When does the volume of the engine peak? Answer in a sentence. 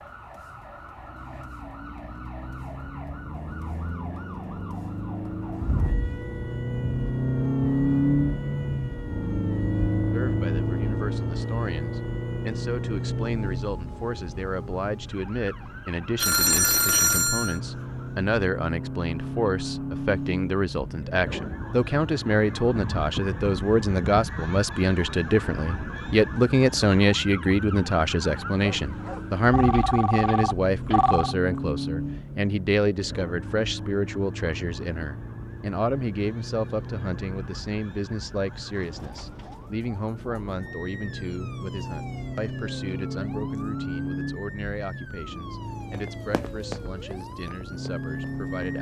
The volume of the engine peaks at 8 seconds.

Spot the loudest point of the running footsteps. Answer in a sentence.
The volume of the running footsteps peaks at 47 seconds.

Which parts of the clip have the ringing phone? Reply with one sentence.
You can hear the ringing phone from 16.1 to 17.6 s and from 28.6 to 31.4 s.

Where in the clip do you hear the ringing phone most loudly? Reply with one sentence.
The volume of the ringing phone peaks at 17 seconds.